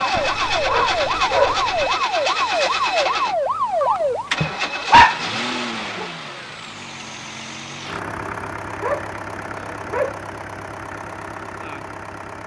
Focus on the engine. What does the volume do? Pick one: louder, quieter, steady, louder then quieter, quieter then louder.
quieter.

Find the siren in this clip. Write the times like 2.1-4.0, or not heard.
0.1-4.3.